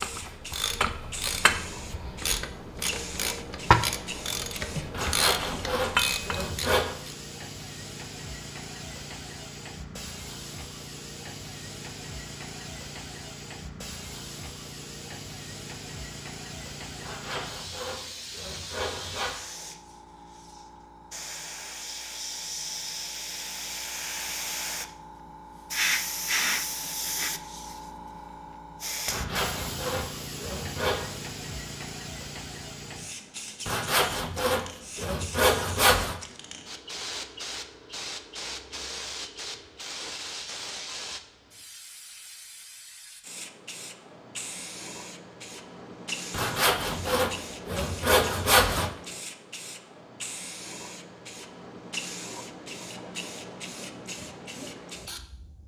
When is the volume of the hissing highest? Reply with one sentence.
The volume of the hissing peaks at 26 seconds.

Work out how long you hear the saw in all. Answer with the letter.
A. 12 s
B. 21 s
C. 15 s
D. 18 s
A.